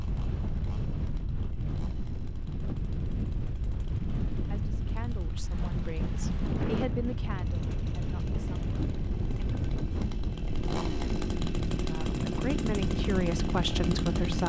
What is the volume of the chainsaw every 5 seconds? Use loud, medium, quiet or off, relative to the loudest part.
quiet, quiet, loud.